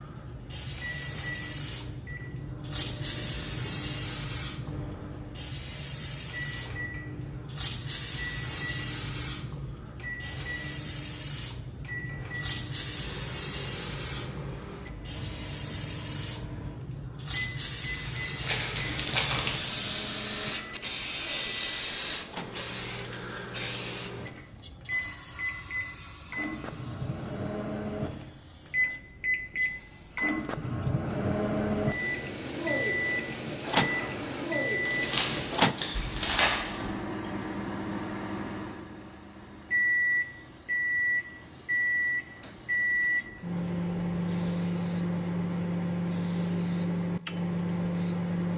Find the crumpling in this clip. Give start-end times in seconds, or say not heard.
18.1-19.6, 34.8-36.9.